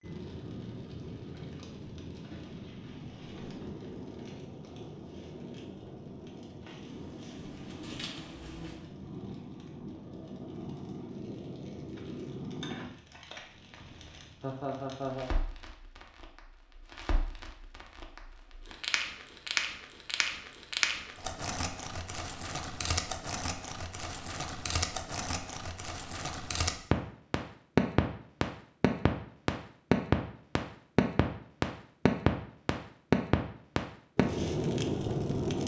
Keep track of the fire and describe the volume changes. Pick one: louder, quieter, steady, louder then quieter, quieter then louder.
louder.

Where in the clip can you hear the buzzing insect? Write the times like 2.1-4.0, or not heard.
6.9-8.9.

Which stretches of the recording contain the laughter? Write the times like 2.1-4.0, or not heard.
14.4-15.3.